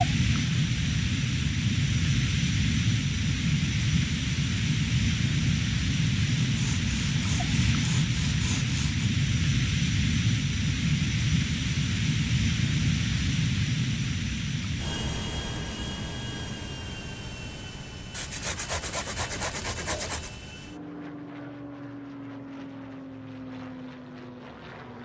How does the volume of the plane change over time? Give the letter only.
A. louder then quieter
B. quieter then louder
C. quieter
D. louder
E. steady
C.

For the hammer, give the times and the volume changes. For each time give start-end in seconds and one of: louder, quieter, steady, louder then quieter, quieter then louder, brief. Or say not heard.
not heard.